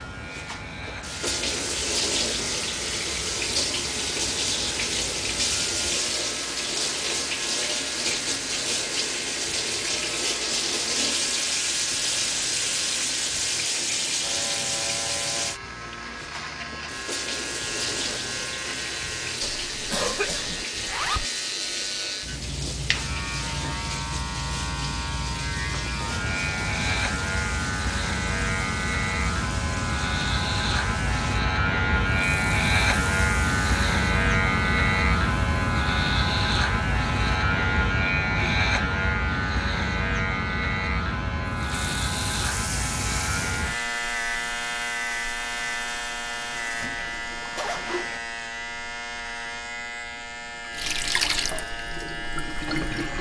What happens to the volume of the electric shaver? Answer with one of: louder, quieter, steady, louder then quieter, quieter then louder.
louder then quieter.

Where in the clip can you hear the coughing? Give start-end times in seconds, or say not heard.
19.4-20.6.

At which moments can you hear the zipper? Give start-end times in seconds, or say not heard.
20.7-21.2, 47.0-48.2.